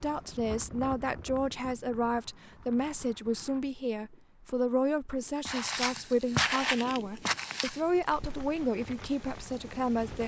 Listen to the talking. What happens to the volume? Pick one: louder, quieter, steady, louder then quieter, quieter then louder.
steady.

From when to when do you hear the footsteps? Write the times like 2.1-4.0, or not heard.
5.5-8.7.